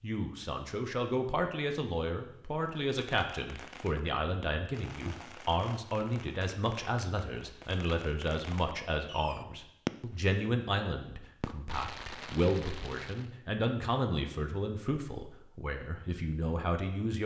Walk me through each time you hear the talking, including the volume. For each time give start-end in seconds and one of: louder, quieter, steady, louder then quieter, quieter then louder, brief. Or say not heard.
0.0-17.2 steady.